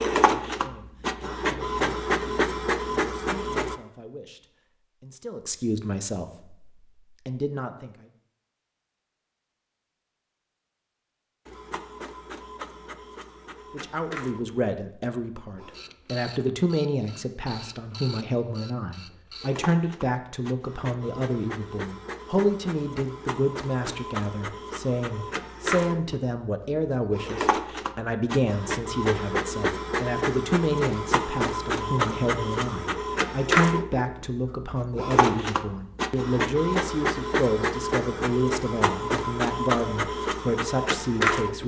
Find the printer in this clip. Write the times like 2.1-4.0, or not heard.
0.0-3.8, 11.4-41.6.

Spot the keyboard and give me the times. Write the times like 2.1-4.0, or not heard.
not heard.